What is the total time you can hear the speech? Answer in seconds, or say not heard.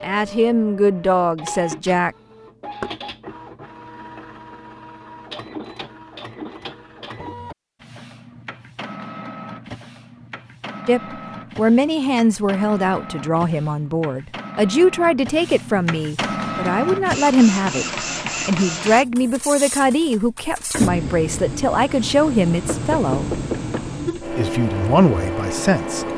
16 s.